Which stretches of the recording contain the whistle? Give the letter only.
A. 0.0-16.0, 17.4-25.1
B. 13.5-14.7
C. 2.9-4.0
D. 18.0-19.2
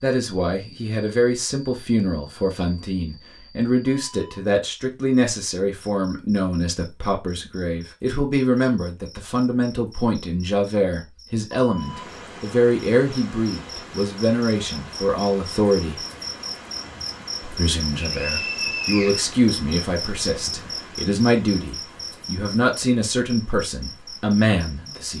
D.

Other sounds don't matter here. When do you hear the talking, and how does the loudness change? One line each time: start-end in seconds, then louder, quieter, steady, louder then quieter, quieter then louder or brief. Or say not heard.
0.0-16.0 steady
17.4-25.1 steady.